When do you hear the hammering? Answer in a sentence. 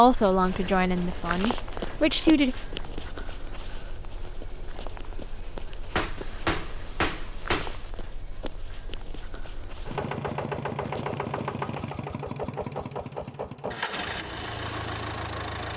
You can hear the hammering from 6.0 to 7.9 s.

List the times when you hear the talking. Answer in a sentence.
The talking can be heard from 0.0 to 2.5 s.